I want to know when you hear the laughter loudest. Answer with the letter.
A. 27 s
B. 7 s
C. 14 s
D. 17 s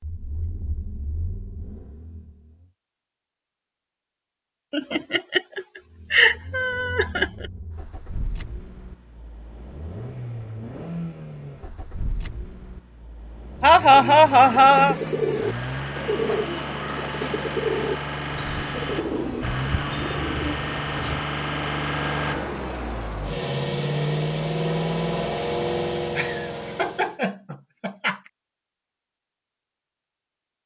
C.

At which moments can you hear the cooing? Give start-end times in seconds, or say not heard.
13.9-21.2.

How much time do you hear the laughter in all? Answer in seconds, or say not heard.
6 s.